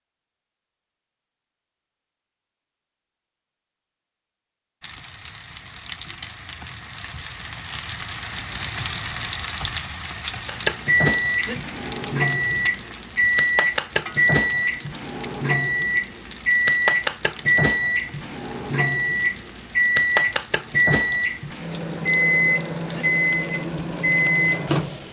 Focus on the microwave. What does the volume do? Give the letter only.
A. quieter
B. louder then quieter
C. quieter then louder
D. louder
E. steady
E.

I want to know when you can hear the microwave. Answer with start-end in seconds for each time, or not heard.
10.4-25.0.